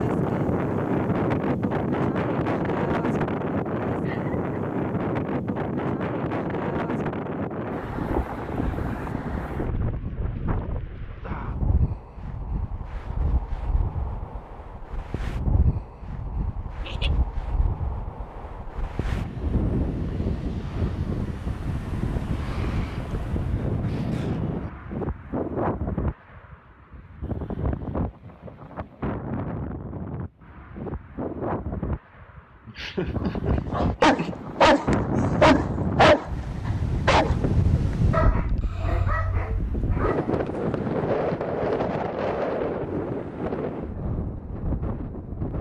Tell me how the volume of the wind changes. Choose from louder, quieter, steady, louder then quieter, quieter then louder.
quieter then louder.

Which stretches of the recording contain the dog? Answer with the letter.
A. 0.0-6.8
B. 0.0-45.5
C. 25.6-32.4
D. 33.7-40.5
D.